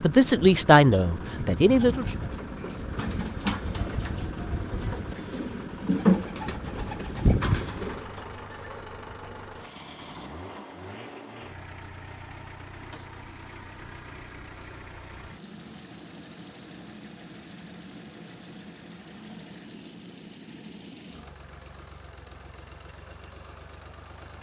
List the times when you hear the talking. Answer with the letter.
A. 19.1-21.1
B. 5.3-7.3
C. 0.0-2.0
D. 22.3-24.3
C.